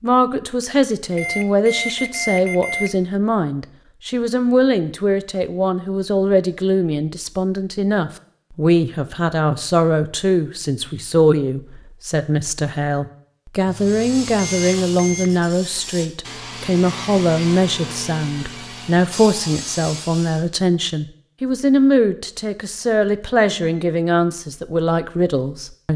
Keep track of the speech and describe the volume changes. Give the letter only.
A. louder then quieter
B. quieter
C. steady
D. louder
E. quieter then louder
C.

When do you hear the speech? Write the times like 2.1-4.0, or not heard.
0.0-25.9.